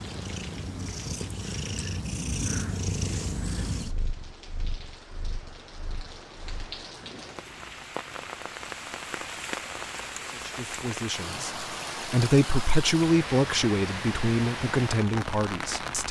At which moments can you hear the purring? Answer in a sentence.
You can hear the purring from 0.0 to 8.4 s.